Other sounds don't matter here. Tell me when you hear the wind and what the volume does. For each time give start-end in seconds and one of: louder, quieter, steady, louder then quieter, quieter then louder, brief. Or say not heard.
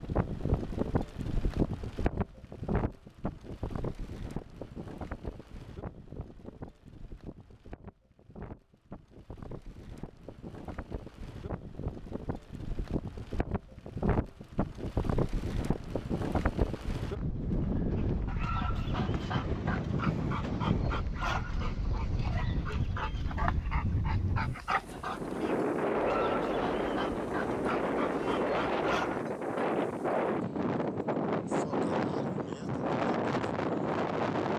0.0-34.5 quieter then louder.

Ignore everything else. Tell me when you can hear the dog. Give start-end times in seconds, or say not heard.
17.9-29.2.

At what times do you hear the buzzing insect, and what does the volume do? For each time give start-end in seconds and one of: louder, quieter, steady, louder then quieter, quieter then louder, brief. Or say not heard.
not heard.